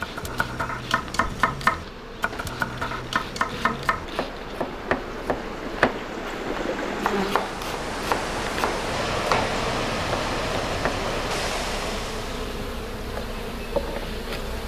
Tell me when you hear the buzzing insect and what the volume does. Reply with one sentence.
You can hear the buzzing insect from 0.0 to 14.6 s, getting louder.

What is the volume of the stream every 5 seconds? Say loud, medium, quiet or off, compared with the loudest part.
medium, loud, loud.